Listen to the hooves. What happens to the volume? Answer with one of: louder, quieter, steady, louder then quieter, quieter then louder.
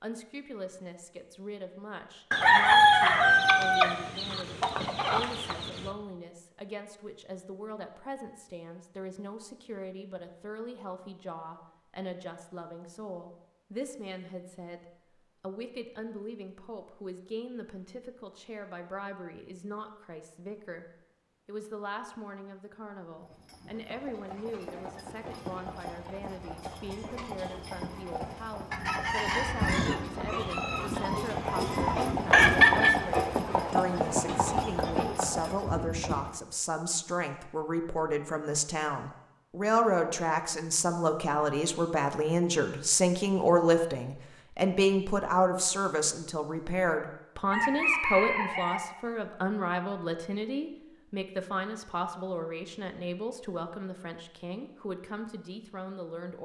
louder.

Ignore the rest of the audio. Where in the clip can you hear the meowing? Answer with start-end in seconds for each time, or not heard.
not heard.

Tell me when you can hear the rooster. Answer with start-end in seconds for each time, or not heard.
2.3-5.9, 28.7-33.0, 47.5-48.8.